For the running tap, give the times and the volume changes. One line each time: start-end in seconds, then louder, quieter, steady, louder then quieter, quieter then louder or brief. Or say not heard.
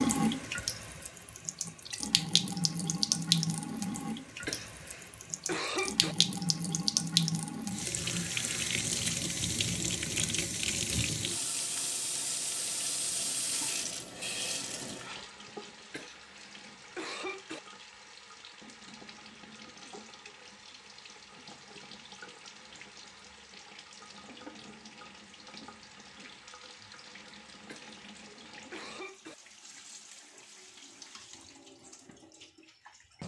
0.0-33.2 quieter.